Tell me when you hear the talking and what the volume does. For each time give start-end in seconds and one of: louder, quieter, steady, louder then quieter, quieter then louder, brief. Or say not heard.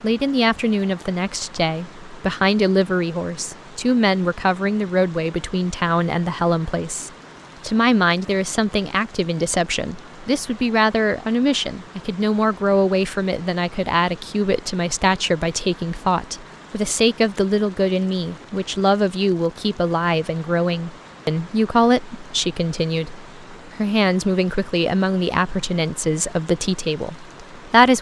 0.0-27.9 steady.